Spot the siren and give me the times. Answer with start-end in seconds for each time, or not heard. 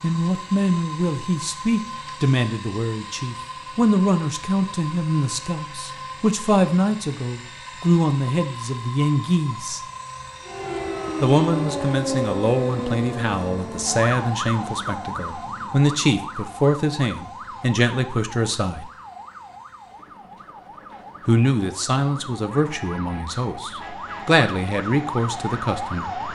10.4-26.3.